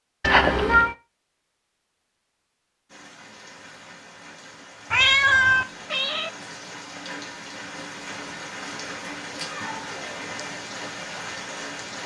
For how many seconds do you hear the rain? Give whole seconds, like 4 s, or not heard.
9 s.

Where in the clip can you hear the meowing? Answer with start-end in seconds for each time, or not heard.
0.2-0.9, 4.9-6.3, 8.7-10.2.